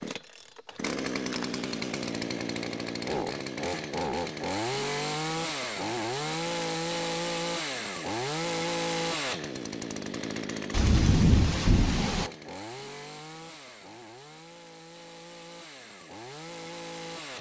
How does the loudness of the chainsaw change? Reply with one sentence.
The loudness of the chainsaw goes down.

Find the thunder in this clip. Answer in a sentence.
The thunder can be heard from 10.7 to 12.3 s.